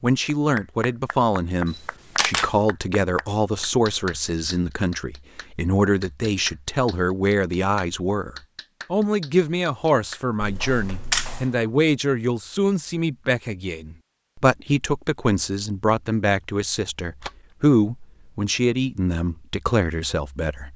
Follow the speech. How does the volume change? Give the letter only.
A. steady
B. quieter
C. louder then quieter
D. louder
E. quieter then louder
A.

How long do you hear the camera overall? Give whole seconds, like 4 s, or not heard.
3 s.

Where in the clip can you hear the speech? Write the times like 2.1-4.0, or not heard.
0.0-20.7.